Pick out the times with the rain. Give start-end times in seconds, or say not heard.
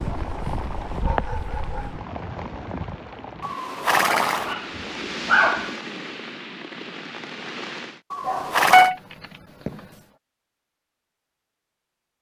0.0-8.0.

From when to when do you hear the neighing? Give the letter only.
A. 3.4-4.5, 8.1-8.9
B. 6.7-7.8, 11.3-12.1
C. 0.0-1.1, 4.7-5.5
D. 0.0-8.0
A.